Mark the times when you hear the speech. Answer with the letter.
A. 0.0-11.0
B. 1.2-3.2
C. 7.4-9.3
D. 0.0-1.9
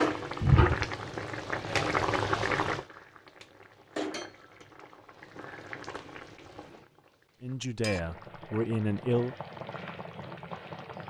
C.